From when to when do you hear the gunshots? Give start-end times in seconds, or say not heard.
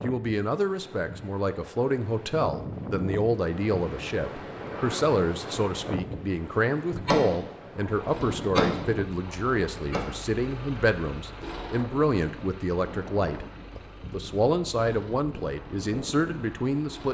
7.0-10.1.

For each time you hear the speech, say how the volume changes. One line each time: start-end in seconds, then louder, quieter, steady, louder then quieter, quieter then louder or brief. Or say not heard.
0.0-17.0 steady.